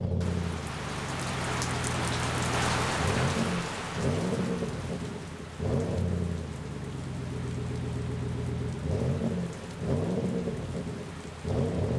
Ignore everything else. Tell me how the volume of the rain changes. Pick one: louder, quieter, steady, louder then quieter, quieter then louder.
quieter.